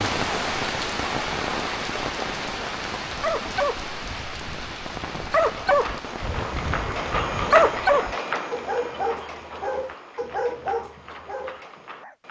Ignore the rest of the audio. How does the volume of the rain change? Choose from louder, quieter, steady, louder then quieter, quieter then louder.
quieter.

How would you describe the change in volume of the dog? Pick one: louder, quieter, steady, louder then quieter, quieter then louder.
louder then quieter.